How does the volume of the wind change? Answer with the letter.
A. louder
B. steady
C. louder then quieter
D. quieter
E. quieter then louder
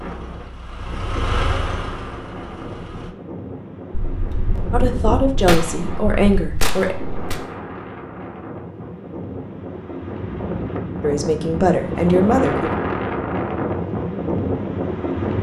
A.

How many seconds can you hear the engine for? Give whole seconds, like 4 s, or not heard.
3 s.